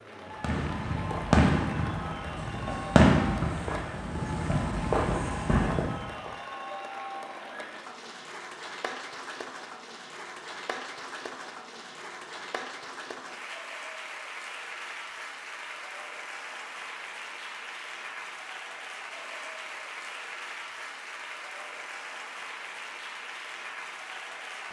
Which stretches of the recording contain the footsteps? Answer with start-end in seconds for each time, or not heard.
not heard.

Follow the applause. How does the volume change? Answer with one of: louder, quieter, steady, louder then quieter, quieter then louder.
steady.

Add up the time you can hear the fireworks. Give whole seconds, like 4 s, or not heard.
6 s.